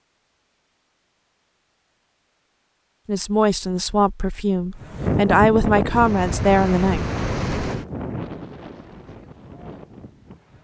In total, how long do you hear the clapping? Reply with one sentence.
The clapping can't be heard in this clip.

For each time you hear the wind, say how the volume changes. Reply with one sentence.
The wind can be heard from 4.8 to 10.5 s, getting quieter.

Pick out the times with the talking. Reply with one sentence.
You can hear the talking from 3.0 to 7.0 s.